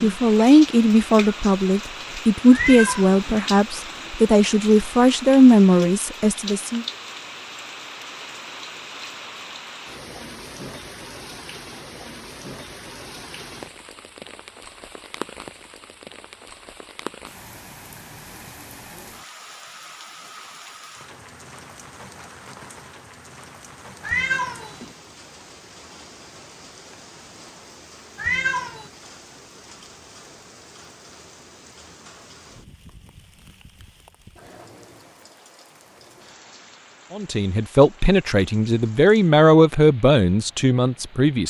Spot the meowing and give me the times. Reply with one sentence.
You can hear the meowing from 2.5 to 3.4 s, from 24.0 to 24.9 s and from 28.1 to 28.9 s.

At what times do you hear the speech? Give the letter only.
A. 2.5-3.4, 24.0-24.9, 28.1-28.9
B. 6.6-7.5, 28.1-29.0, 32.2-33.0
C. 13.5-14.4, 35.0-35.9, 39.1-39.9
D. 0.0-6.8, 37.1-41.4
D.